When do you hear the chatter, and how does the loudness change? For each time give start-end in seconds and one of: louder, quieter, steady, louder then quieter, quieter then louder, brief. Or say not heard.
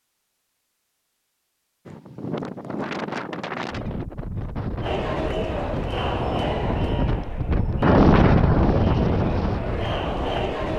4.8-10.7 quieter then louder.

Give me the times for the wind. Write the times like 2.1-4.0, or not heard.
1.9-10.7.